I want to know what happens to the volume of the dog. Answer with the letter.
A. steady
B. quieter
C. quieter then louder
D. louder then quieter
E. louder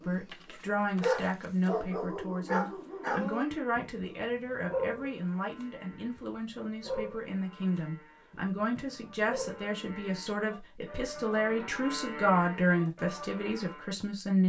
B.